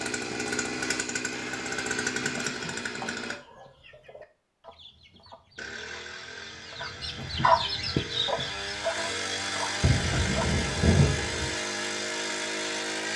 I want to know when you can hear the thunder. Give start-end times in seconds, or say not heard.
9.8-11.6.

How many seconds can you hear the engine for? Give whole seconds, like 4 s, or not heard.
11 s.